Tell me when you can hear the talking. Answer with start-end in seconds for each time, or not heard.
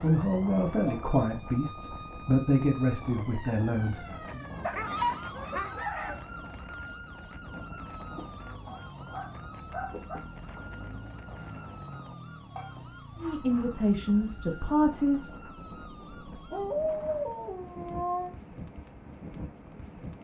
0.0-4.5, 13.2-15.3.